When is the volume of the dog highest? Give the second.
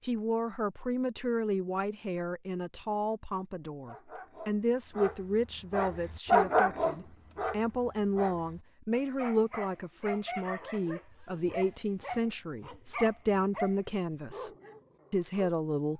6 s.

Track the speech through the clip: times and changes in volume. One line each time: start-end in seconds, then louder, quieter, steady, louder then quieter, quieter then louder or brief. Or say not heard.
0.0-14.5 steady
15.1-15.9 brief.